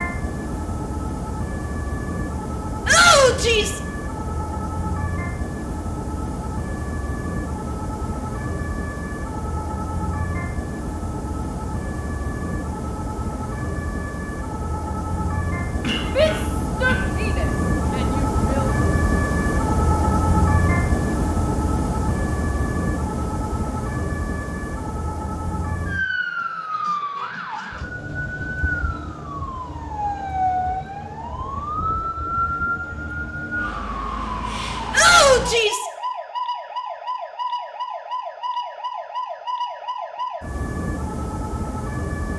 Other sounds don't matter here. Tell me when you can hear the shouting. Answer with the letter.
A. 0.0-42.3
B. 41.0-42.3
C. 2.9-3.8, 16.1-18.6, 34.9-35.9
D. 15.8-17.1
C.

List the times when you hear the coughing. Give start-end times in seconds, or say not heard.
15.8-17.1.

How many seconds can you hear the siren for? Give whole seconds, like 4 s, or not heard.
42 s.